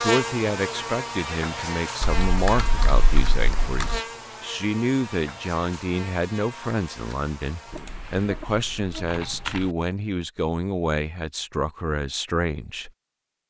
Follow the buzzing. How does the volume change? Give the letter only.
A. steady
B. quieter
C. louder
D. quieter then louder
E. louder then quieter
B.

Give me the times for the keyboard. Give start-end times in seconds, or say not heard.
2.0-4.0, 7.7-9.7.